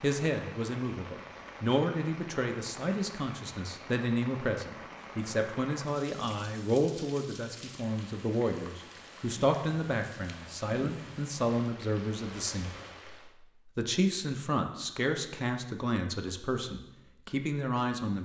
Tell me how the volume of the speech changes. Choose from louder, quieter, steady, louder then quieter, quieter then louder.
steady.